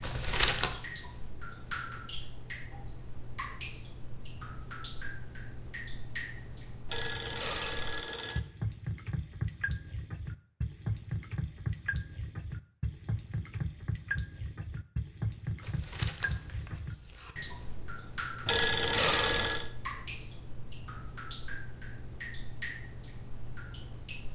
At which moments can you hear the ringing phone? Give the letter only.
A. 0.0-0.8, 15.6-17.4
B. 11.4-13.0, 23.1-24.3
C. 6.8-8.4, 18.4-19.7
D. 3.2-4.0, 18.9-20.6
C.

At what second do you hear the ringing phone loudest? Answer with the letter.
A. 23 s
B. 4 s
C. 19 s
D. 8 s
C.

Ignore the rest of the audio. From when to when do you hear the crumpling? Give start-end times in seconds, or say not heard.
0.0-0.8, 15.6-17.4.